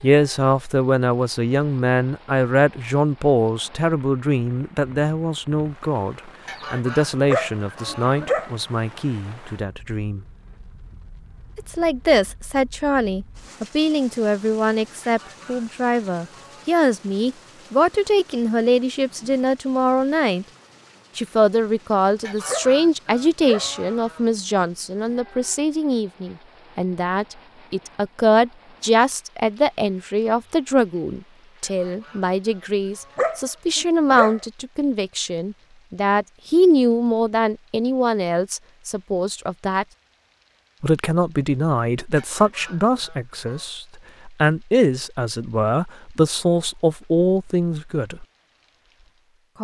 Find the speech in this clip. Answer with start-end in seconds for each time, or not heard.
0.0-10.2, 11.6-20.4, 21.1-39.9, 40.8-48.2.